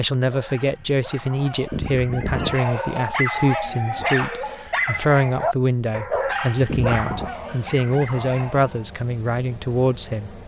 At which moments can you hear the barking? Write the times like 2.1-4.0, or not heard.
0.1-8.9.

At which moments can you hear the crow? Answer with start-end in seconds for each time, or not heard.
not heard.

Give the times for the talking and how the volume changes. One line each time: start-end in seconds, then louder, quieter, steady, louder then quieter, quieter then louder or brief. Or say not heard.
0.0-10.4 steady.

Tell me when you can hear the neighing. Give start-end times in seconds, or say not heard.
1.7-2.6, 6.7-7.3.